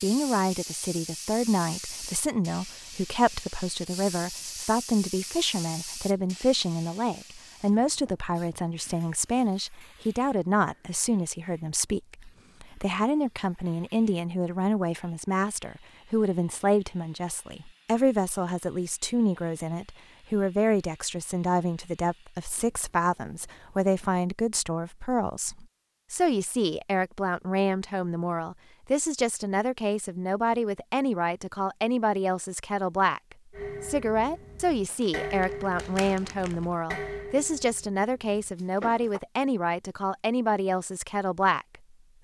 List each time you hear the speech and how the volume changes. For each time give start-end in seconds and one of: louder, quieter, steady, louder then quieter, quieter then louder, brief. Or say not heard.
0.0-41.6 steady.